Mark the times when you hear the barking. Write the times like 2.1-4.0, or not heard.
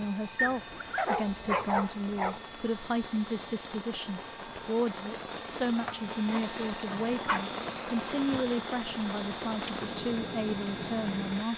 0.3-2.4, 6.0-7.5.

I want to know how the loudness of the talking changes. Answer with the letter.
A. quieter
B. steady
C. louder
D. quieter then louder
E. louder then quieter
B.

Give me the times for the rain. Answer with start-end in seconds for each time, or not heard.
0.0-11.5.